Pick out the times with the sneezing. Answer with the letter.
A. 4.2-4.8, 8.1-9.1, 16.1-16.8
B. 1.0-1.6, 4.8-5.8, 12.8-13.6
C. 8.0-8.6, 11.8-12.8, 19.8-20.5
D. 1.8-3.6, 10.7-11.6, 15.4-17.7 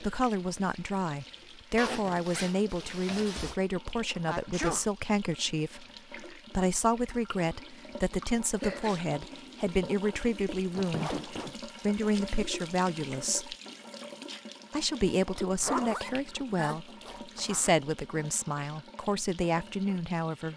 A.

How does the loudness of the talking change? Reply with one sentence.
The volume of the talking stays about the same.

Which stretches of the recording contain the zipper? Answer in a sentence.
You can hear the zipper from 1.8 to 3.6 s, from 10.7 to 11.6 s and from 15.4 to 17.7 s.